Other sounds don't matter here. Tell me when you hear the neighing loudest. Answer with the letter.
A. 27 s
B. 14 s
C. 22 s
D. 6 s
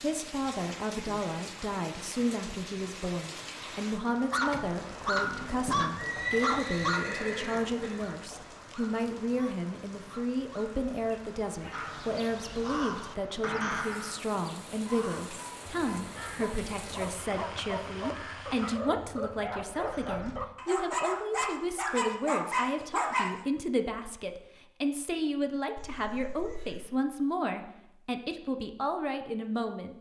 D.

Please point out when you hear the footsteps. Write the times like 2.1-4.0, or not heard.
not heard.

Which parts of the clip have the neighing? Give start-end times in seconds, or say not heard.
5.2-8.0, 25.8-26.8.